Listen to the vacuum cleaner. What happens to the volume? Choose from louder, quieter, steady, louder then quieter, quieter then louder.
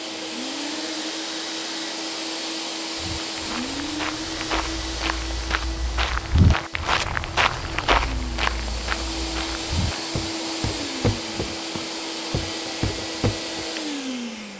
quieter then louder.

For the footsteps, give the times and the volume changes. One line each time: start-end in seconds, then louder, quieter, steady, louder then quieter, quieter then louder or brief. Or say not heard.
3.0-13.7 louder then quieter.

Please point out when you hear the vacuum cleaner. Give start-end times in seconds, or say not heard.
0.0-14.5.